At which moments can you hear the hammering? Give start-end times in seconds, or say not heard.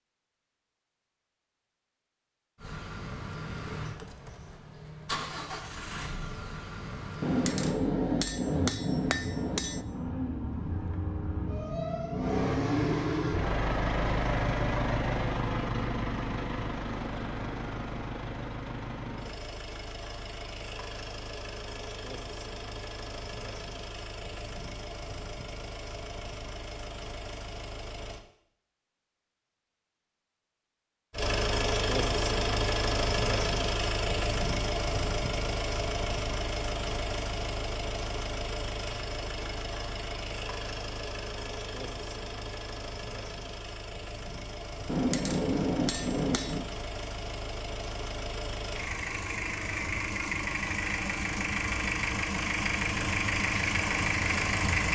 7.2-9.8, 44.9-46.7.